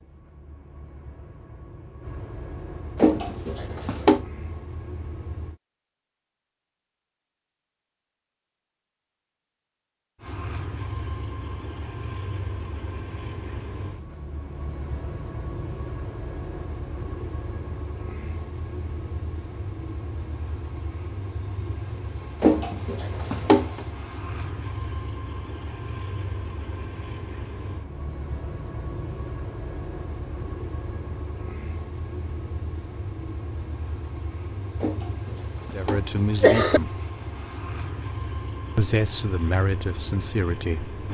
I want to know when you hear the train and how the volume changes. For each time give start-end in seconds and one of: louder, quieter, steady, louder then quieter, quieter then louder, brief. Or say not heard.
0.0-5.6 louder
10.2-41.1 steady.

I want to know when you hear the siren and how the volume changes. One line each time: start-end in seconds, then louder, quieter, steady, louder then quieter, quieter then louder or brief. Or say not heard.
not heard.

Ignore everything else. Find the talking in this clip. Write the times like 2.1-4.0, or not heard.
35.7-37.0, 38.8-41.0.